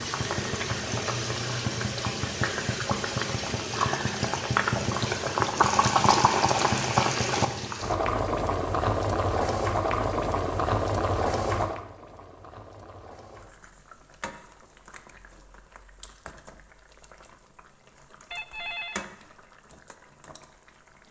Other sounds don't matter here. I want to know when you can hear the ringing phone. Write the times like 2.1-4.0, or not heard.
18.3-19.1.